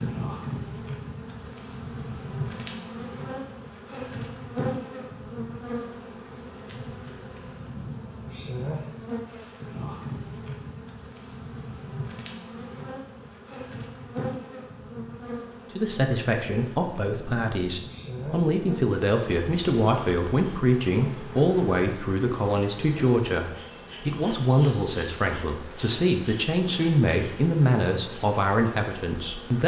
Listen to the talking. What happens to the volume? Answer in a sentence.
The volume of the talking stays about the same.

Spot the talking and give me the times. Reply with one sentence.
You can hear the talking from 15.7 to 29.6 s.